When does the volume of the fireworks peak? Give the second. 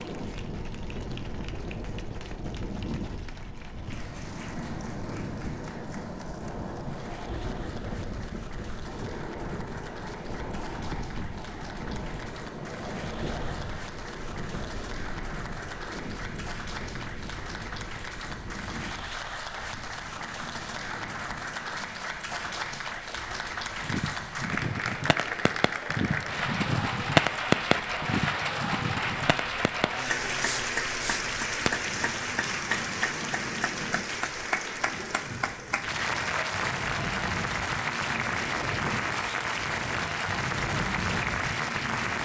27 s.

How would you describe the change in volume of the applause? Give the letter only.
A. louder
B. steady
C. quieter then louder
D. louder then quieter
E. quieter
A.